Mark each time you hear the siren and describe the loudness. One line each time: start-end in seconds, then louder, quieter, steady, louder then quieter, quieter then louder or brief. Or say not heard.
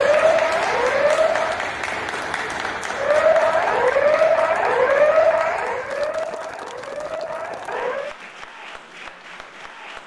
0.0-1.6 brief
2.9-8.2 quieter.